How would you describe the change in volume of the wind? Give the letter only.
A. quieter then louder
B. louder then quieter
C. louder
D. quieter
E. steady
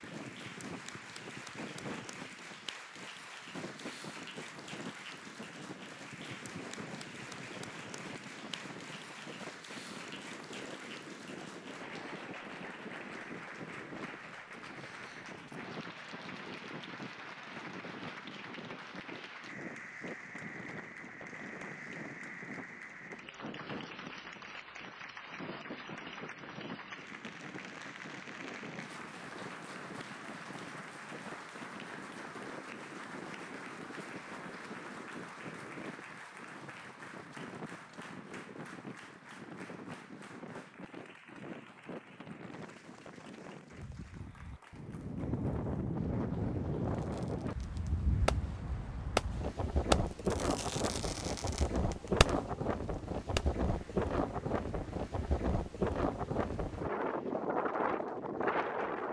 C.